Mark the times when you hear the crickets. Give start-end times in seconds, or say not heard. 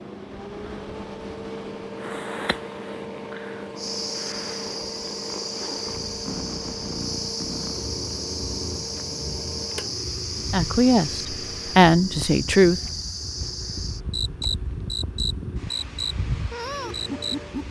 3.8-17.6.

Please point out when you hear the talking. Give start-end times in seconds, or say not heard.
10.5-12.8.